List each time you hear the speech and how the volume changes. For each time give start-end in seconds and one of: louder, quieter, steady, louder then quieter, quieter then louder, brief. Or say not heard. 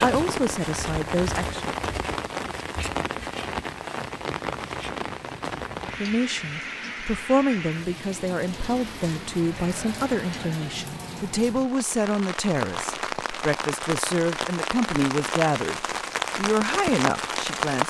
0.0-1.6 brief
6.0-17.8 steady.